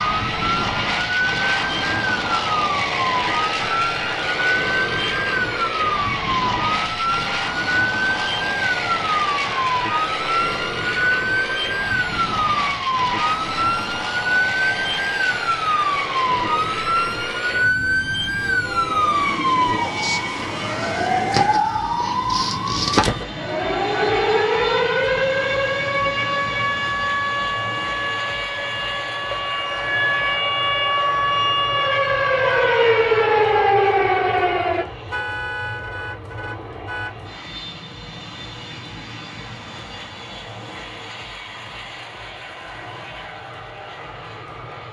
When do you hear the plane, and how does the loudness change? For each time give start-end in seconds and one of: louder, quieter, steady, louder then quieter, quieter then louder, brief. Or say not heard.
0.0-44.8 quieter.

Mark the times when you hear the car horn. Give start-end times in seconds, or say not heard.
18.6-19.2, 35.1-37.1.